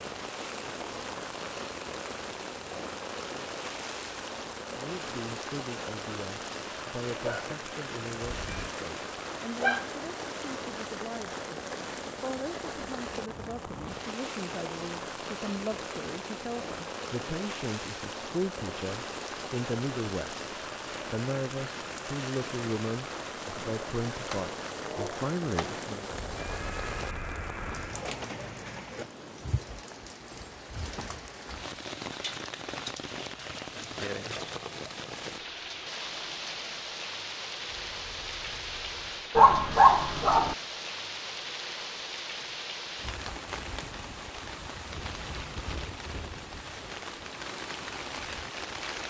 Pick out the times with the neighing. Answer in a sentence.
The neighing can be heard from 8.2 to 8.8 s, from 26.0 to 28.1 s and from 37.8 to 39.0 s.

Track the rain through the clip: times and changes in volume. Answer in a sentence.
You can hear the rain from 0.0 to 49.0 s, at a steady volume.